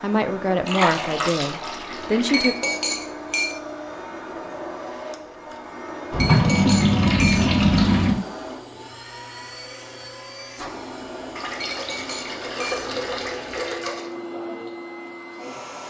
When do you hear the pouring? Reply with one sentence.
You can hear the pouring from 0.7 to 2.4 s, from 6.1 to 8.2 s and from 11.3 to 14.1 s.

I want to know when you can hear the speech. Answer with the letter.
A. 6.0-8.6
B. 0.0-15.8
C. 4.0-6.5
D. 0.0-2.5
D.